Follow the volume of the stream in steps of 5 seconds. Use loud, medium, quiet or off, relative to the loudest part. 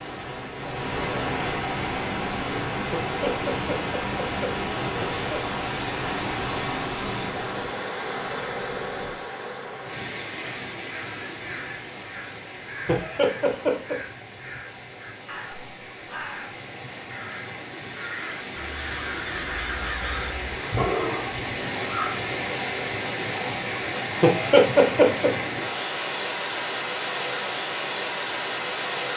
loud, loud, medium, medium, loud, loud.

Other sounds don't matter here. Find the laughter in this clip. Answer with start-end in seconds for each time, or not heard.
2.9-5.3, 12.8-13.9, 24.2-25.3.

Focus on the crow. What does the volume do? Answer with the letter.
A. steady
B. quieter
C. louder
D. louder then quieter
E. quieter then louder
C.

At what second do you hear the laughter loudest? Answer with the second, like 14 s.
25 s.